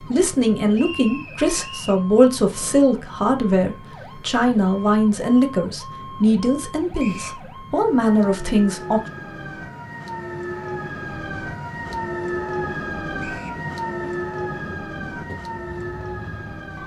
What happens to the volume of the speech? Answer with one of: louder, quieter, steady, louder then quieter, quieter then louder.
steady.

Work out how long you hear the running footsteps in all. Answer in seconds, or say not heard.
not heard.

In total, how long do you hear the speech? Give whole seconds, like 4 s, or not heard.
9 s.